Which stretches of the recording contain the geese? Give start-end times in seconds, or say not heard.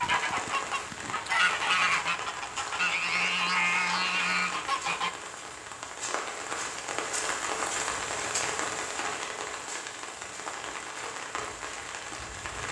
0.0-5.1.